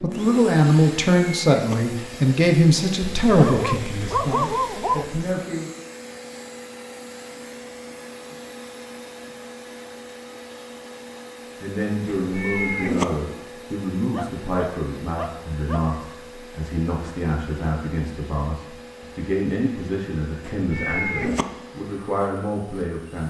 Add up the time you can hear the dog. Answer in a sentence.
The dog can be heard for 4 seconds in total.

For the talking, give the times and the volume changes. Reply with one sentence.
You can hear the talking from 0.0 to 5.7 s, getting quieter; and from 11.6 to 23.2 s, at a steady volume.